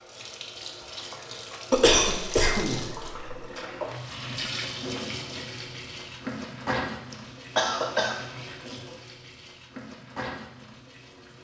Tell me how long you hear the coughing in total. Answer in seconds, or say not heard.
3 s.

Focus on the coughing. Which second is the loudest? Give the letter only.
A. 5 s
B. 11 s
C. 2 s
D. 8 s
C.